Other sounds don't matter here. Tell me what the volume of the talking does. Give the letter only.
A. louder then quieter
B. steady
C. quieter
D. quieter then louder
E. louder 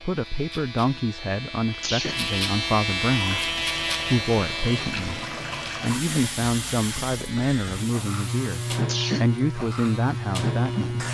B.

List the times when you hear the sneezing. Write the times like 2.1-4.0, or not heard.
1.8-2.2, 8.8-9.3.